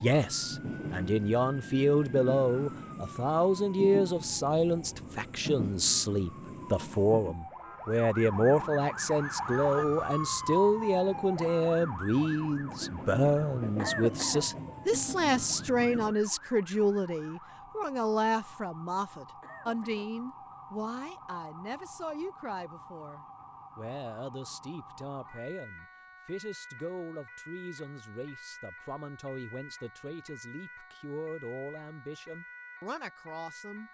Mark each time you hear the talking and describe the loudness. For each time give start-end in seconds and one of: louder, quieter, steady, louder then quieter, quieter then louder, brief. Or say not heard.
0.0-33.8 quieter.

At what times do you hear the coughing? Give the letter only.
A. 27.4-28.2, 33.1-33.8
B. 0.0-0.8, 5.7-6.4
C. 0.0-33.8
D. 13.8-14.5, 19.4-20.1
D.